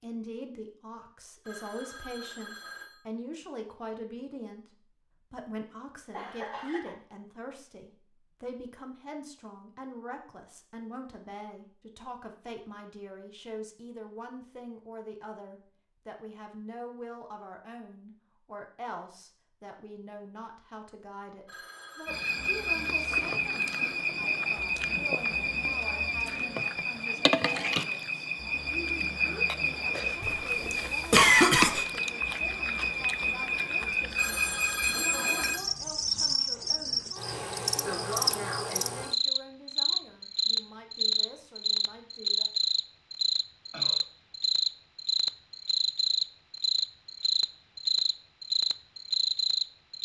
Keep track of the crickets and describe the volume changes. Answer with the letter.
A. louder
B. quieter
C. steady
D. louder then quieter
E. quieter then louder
C.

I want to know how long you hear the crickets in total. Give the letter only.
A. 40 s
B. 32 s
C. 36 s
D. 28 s
D.